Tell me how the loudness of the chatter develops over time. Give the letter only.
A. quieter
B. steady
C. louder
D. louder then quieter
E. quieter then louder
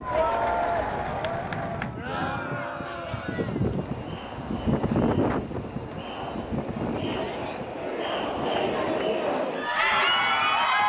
E.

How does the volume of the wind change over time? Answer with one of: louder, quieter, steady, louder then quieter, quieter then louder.
louder then quieter.